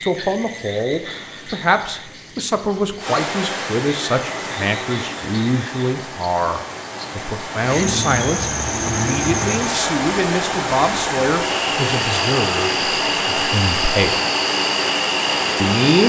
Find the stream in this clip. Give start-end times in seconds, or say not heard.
3.0-16.0.